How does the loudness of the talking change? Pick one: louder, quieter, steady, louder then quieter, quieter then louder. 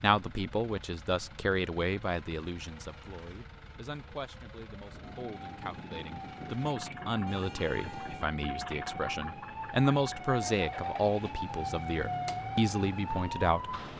quieter then louder.